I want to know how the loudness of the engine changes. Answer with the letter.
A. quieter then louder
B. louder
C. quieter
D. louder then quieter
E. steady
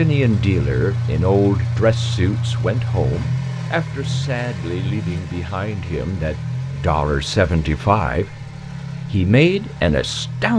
C.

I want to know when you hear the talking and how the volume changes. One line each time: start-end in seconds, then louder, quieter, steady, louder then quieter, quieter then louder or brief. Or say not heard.
0.0-8.3 quieter then louder
9.1-10.5 brief.